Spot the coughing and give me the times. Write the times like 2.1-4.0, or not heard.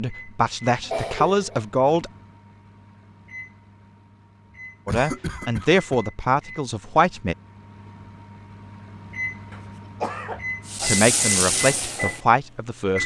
0.8-1.6, 4.8-6.0, 9.5-10.4.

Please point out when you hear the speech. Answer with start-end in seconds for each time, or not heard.
0.0-2.1, 4.8-7.3, 10.8-13.0.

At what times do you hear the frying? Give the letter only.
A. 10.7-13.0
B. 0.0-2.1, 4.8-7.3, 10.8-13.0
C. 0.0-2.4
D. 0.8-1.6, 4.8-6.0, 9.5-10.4
A.